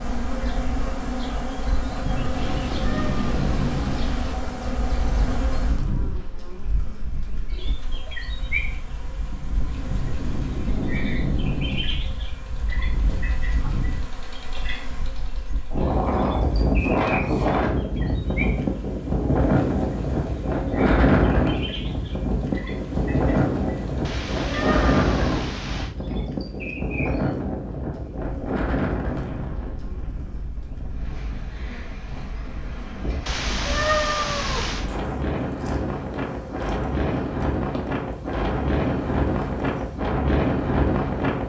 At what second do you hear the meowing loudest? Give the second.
34 s.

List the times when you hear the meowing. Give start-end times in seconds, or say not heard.
2.5-4.3, 24.1-25.9, 33.2-34.9.